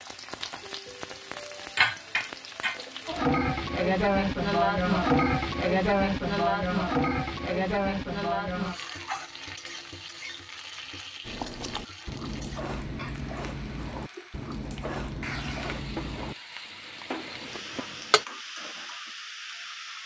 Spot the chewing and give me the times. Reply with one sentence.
You can hear the chewing from 11.2 to 18.2 s.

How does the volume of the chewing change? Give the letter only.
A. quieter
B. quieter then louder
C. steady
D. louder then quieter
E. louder
A.